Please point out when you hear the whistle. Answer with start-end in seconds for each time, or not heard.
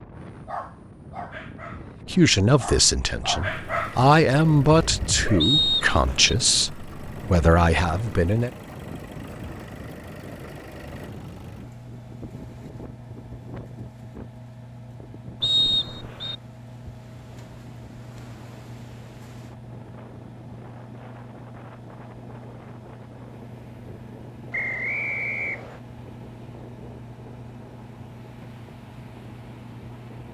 5.4-6.3, 15.4-16.4, 24.5-25.8.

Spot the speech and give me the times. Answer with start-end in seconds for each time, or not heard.
2.0-8.5.